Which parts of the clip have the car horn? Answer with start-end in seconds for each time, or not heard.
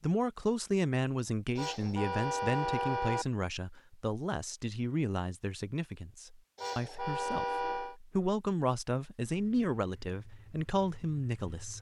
1.6-3.2, 6.5-8.0.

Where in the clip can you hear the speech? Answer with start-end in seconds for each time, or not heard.
0.0-11.7.